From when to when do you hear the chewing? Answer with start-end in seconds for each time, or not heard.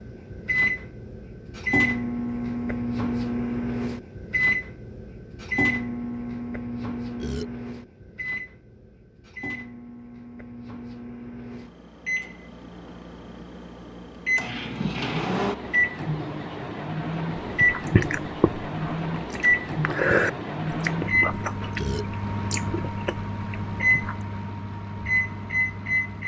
17.4-24.2.